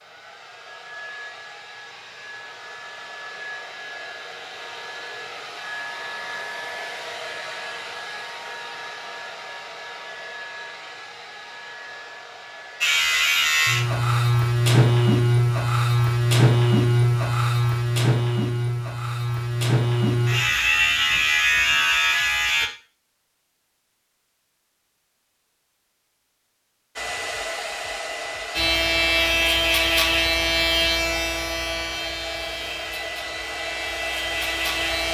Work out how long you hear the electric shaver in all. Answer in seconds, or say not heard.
16 s.